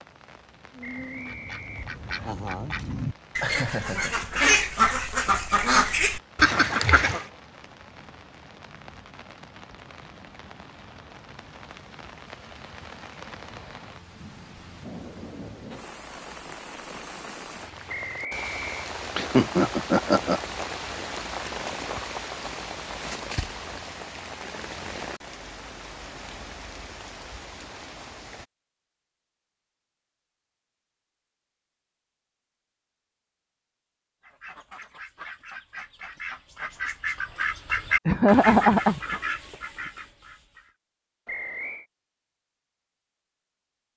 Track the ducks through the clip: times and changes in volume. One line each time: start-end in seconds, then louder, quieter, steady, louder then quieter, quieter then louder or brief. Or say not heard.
0.7-7.2 louder
34.2-40.8 louder then quieter.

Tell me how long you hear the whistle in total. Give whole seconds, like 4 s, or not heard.
3 s.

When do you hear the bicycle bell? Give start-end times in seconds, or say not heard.
not heard.